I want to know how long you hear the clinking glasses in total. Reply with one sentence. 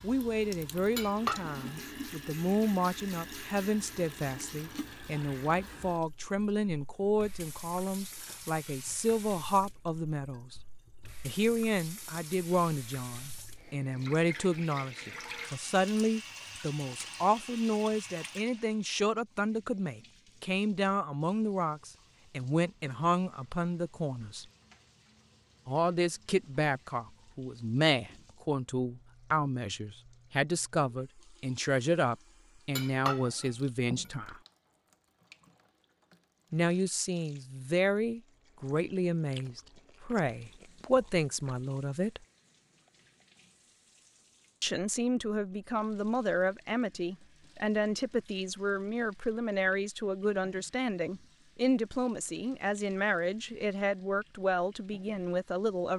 The clinking glasses can be heard for 2 seconds in total.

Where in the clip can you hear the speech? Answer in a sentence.
You can hear the speech from 0.0 to 10.6 s, from 11.2 to 24.4 s, from 25.6 to 34.4 s, from 36.5 to 42.2 s and from 44.6 to 55.9 s.